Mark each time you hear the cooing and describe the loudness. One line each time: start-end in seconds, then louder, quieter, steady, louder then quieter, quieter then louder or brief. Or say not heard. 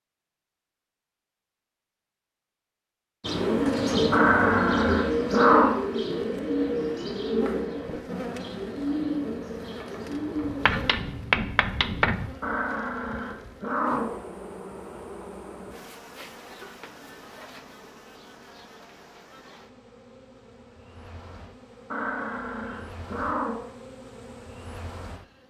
3.2-10.8 quieter.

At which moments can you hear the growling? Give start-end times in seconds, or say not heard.
4.1-5.8, 12.4-14.2, 21.9-23.7.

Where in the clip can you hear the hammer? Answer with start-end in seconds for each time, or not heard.
10.7-12.2.